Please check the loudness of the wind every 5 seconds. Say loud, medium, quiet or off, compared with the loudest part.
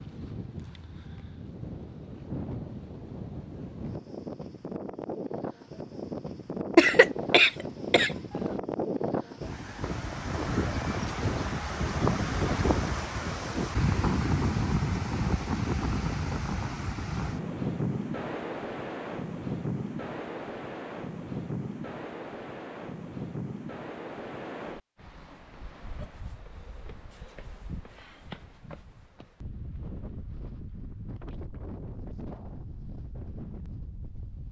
medium, medium, loud, loud, medium, quiet, quiet.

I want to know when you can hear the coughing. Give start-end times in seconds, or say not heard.
6.8-8.1.